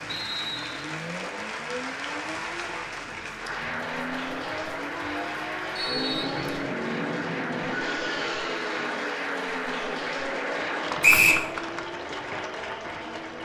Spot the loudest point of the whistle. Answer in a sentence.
The loudest moment of the whistle is at 11 seconds.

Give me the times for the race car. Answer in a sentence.
The race car can be heard from 0.0 to 13.4 s.